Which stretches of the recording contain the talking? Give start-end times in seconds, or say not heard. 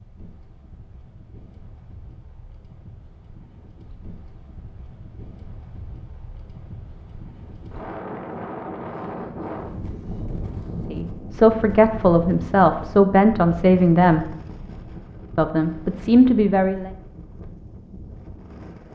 10.9-14.3, 15.3-16.9.